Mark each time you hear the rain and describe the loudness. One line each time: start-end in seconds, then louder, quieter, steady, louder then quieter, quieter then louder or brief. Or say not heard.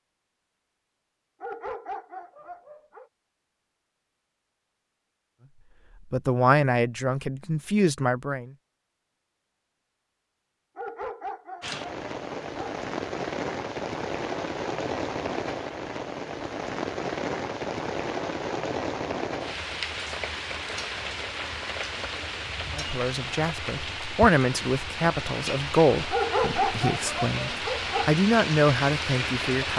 11.6-29.7 steady.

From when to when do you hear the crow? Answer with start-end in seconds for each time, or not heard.
not heard.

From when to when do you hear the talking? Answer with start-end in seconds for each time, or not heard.
6.1-8.5, 22.7-29.7.